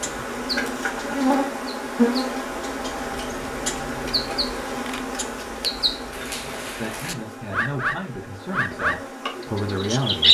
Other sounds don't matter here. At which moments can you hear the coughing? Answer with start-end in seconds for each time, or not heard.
not heard.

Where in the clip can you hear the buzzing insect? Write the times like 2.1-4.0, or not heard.
0.0-10.2.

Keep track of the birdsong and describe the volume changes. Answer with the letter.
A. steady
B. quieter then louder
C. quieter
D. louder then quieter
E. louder
E.